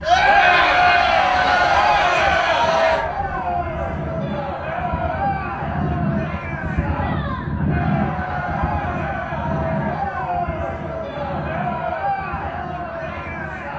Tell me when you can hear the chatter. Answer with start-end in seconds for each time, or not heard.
0.0-13.7.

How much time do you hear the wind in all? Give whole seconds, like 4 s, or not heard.
14 s.